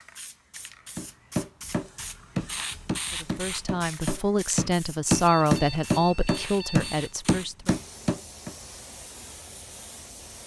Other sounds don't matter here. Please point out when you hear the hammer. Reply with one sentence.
You can hear the hammer from 0.9 to 8.6 s.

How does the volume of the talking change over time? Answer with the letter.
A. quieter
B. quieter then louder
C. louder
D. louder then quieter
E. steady
D.